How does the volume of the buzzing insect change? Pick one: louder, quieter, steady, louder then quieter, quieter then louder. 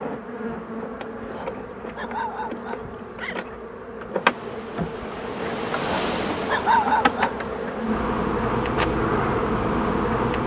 louder.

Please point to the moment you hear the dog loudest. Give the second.
7 s.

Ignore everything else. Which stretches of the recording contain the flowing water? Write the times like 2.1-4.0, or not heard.
4.0-10.4.